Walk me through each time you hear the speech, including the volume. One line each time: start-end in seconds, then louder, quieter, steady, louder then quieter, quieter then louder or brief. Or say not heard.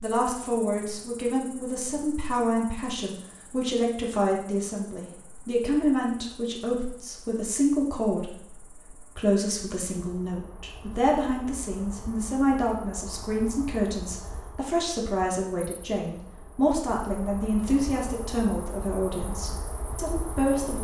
0.0-20.8 steady.